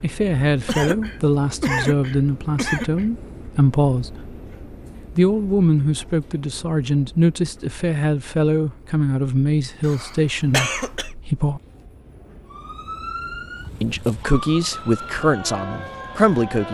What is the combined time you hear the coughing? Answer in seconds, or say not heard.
4 s.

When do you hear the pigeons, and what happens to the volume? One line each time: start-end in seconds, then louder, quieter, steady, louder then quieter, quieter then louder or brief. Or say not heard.
not heard.